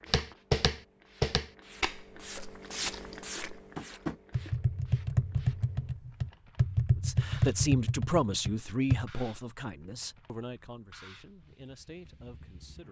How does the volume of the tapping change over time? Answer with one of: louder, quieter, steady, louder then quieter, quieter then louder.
quieter then louder.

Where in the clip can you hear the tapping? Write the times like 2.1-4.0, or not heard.
0.1-9.1.